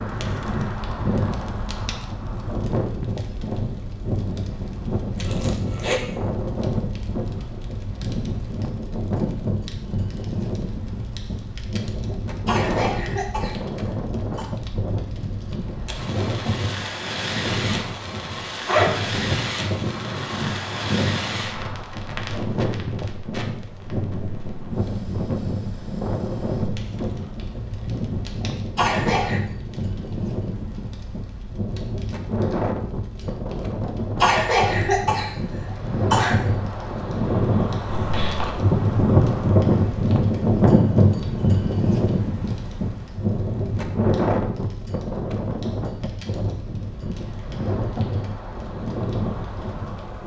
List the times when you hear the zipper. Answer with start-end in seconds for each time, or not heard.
5.2-6.0, 18.6-19.2, 37.9-38.5.